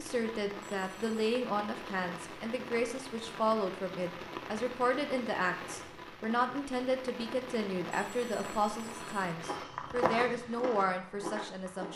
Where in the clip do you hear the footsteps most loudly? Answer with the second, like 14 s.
10 s.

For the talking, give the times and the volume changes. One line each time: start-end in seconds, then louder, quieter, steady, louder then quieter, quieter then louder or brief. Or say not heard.
0.0-11.8 steady.